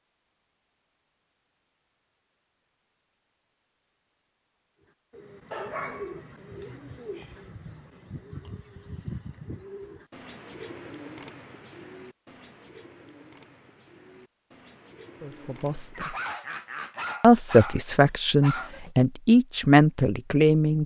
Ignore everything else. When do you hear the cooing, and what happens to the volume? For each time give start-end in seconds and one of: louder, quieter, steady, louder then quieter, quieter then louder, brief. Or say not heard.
5.1-16.1 quieter.